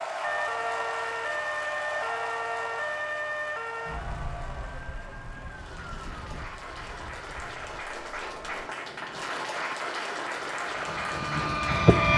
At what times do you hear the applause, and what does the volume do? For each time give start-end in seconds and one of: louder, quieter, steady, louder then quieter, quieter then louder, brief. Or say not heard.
0.0-12.1 quieter then louder.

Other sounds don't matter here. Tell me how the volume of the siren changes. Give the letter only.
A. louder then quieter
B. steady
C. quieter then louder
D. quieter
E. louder
D.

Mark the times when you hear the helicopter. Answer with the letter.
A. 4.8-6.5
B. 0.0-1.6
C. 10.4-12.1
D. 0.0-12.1
C.